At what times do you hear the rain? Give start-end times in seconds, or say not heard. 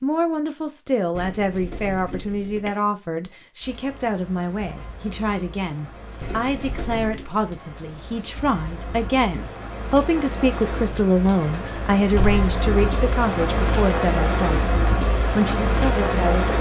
3.6-16.5.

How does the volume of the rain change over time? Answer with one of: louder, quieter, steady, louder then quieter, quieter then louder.
louder.